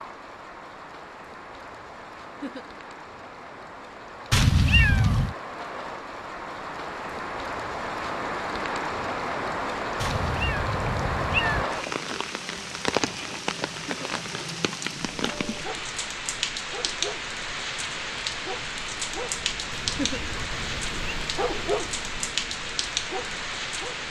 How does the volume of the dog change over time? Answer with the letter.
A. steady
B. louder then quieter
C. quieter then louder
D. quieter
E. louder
B.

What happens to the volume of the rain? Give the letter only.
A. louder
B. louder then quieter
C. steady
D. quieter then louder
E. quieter
A.